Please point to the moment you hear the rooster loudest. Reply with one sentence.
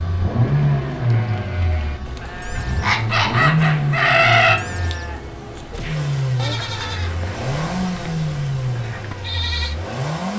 The loudest moment of the rooster is at 4 seconds.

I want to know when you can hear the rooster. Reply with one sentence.
You can hear the rooster from 2.5 to 4.5 s.